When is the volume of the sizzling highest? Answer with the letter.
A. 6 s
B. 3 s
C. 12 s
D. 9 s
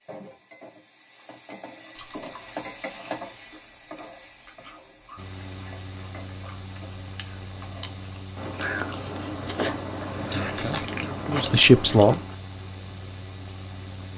B.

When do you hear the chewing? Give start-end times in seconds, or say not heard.
1.9-12.3.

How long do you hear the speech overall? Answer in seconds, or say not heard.
2 s.